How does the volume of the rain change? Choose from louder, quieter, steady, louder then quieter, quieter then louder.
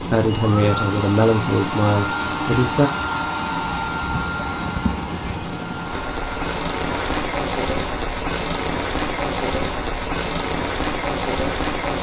louder.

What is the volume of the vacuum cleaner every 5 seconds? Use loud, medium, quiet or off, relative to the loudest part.
loud, medium, off.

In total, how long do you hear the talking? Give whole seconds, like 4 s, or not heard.
3 s.